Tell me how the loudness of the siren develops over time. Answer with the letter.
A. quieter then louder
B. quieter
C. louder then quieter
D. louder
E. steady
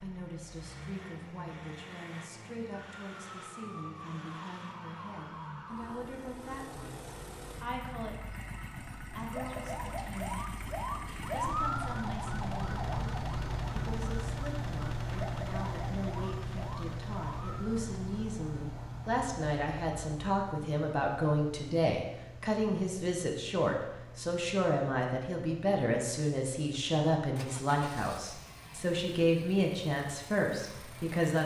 C.